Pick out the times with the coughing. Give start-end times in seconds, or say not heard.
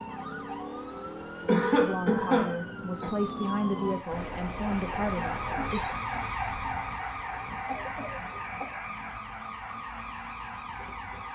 1.4-3.1, 7.6-8.8.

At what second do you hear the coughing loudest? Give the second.
2 s.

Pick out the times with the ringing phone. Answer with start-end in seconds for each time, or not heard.
4.1-6.0.